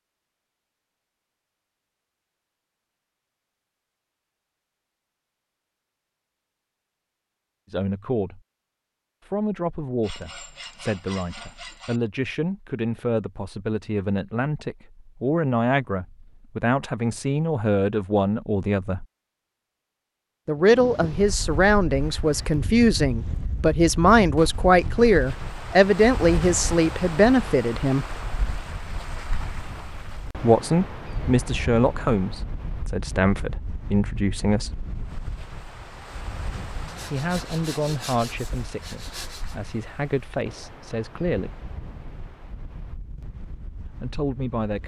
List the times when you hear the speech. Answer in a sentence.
The speech can be heard from 7.7 to 8.4 s, from 9.2 to 19.1 s, from 20.4 to 28.1 s, from 30.4 to 34.9 s, from 37.1 to 41.6 s and from 44.0 to 44.8 s.